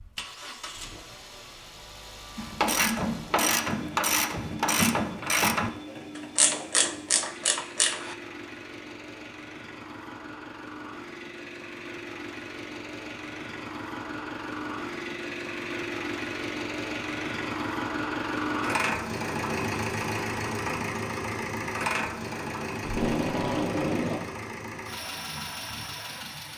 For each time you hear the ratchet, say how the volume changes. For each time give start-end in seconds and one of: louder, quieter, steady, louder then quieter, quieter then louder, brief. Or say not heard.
2.4-8.2 steady.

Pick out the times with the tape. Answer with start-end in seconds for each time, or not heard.
22.8-24.2.